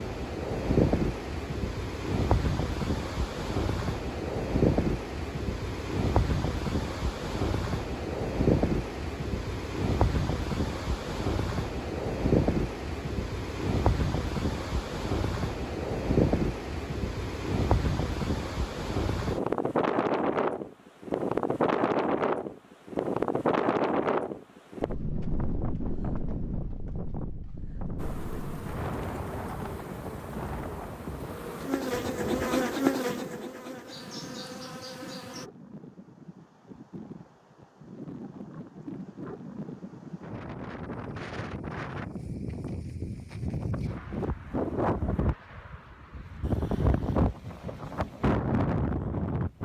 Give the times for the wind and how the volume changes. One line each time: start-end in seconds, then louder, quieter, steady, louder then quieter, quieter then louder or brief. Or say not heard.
0.0-49.5 quieter then louder.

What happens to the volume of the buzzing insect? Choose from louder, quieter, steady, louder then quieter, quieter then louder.
louder then quieter.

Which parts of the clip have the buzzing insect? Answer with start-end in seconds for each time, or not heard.
27.9-35.5.